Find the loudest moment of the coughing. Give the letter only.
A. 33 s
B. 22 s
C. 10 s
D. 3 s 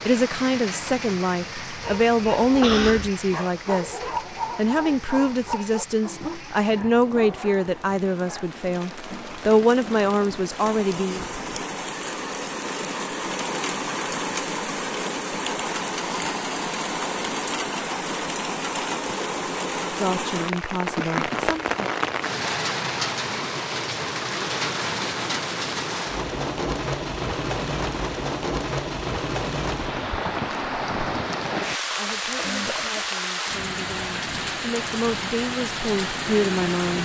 D.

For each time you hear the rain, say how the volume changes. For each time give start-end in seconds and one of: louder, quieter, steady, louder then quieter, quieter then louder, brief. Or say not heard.
0.0-37.0 louder.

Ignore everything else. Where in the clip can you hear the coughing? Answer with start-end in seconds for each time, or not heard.
2.6-3.1, 20.8-21.4, 32.0-33.1.